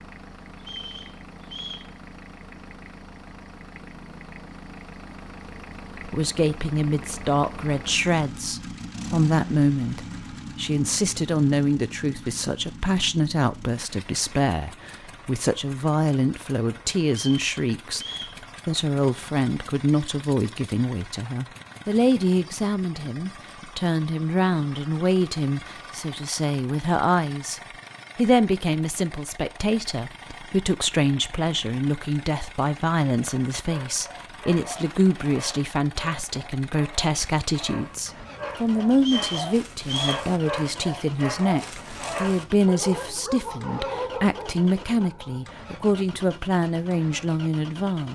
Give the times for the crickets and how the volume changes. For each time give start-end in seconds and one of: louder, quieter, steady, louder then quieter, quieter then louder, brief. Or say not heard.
not heard.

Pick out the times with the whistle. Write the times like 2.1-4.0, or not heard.
0.6-1.9, 17.1-18.4, 39.0-40.2.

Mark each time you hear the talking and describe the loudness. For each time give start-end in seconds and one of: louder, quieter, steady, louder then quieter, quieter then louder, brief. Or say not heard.
6.0-48.0 steady.